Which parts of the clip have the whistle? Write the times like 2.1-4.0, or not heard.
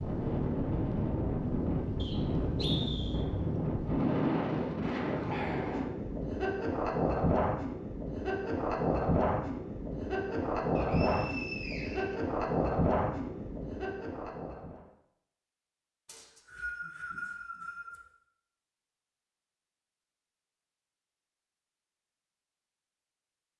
1.9-3.2, 10.8-12.2, 16.1-18.0.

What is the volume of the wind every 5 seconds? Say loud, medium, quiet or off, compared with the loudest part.
loud, loud, loud, off, off.